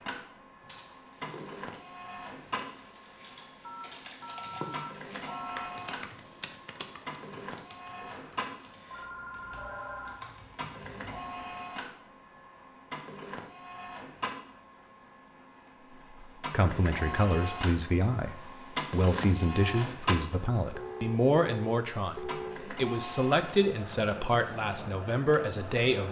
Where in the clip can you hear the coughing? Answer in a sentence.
You can't hear the coughing here.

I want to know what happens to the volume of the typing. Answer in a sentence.
The loudness of the typing goes up, then down.